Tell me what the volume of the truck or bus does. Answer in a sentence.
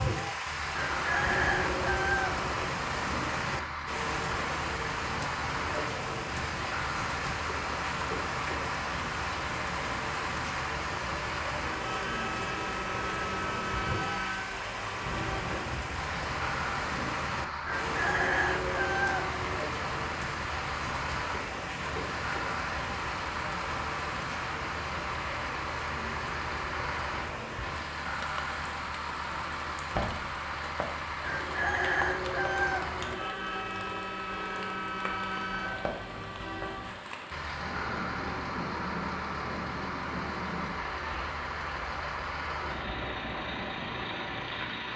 The loudness of the truck or bus stays about the same.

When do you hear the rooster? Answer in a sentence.
You can hear the rooster from 0.7 to 2.7 s, from 17.6 to 19.6 s and from 31.2 to 33.2 s.